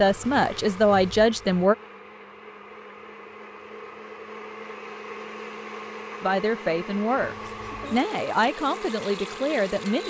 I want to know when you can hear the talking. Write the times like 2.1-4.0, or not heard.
0.0-1.8, 6.2-10.0.